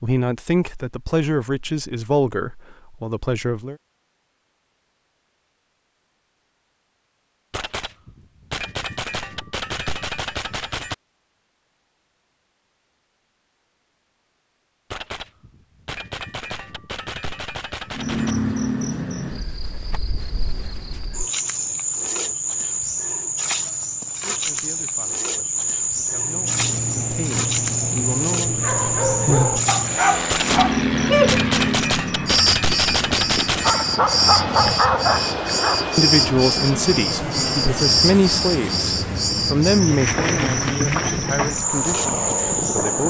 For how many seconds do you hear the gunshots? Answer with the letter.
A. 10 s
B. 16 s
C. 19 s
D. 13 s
A.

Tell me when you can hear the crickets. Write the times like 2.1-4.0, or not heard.
17.9-43.0.